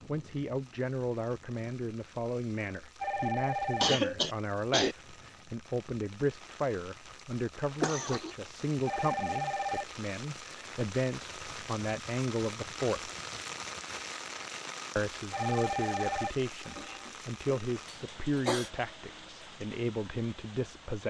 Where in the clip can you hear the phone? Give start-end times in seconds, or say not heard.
3.0-4.0, 8.8-9.8, 15.3-17.1.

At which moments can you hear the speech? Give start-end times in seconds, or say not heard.
0.1-13.1, 14.9-21.0.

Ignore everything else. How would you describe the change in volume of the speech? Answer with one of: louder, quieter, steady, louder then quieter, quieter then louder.
steady.